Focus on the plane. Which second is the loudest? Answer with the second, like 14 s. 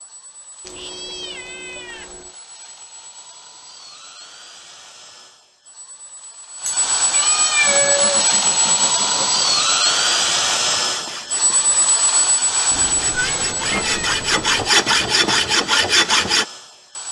10 s.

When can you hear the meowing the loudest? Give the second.
8 s.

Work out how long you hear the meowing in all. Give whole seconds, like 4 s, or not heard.
5 s.